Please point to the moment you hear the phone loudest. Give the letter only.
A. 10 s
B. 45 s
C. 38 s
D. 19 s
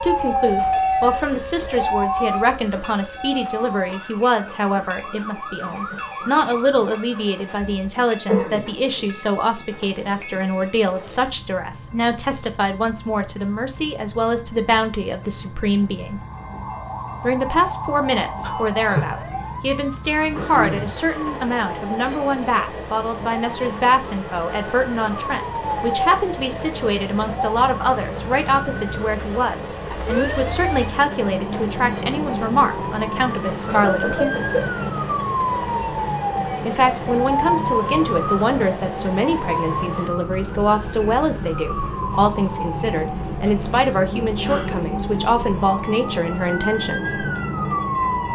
D.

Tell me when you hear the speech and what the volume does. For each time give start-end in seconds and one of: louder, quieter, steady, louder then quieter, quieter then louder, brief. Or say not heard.
0.0-16.2 steady
17.2-34.4 steady
36.6-47.2 steady.